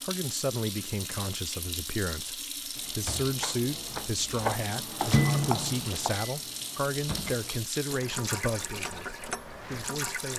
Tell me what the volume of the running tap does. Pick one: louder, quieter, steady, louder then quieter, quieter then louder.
steady.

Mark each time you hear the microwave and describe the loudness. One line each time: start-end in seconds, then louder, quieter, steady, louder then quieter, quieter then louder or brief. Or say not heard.
2.7-7.6 louder then quieter.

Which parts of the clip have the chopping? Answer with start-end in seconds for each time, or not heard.
3.4-6.2.